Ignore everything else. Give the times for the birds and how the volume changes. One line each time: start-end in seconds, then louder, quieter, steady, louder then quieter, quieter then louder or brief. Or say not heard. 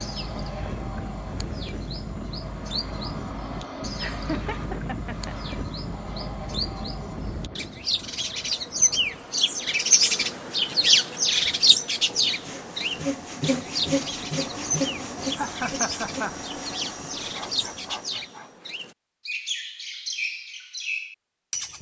0.0-21.7 louder then quieter.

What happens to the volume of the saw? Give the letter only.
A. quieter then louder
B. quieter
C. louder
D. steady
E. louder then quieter
B.